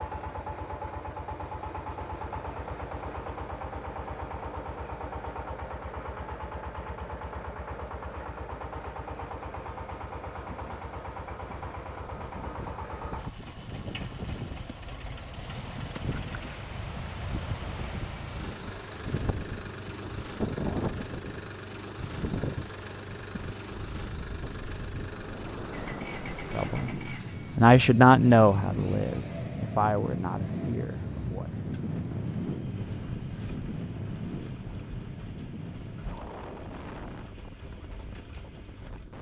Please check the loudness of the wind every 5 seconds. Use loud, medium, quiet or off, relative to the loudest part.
off, off, medium, medium, loud, loud, loud, medium.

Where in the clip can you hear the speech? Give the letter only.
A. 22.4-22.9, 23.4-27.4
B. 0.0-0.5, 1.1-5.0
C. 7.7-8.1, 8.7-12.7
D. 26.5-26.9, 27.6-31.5
D.